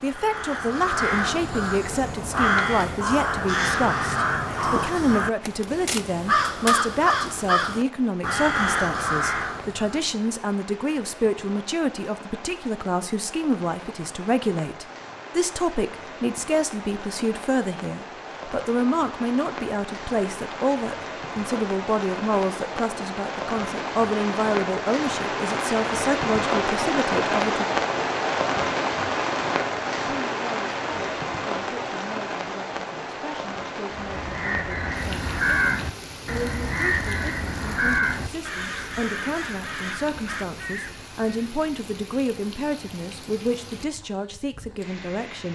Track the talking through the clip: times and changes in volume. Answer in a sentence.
The talking can be heard from 0.0 to 27.6 s, at a steady volume; and from 30.1 to 45.5 s, getting louder.